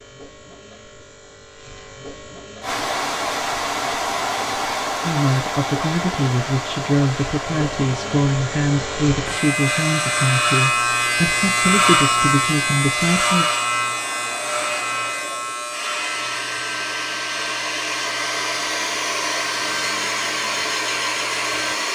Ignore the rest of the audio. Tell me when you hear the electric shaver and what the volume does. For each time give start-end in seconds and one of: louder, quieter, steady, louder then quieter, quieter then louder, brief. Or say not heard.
0.0-21.8 louder then quieter.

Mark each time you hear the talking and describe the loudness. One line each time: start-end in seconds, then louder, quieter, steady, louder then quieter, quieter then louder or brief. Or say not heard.
5.0-13.4 steady.